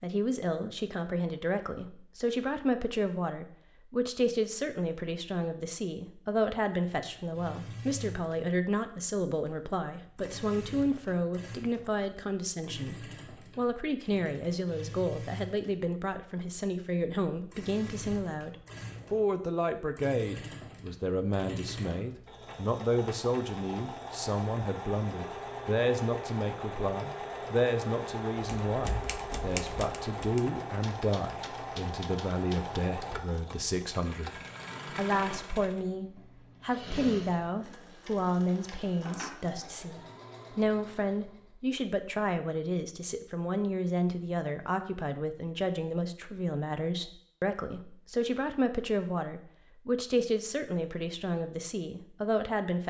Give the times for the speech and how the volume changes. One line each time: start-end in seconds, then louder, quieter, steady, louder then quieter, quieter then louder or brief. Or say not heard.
0.0-52.8 steady.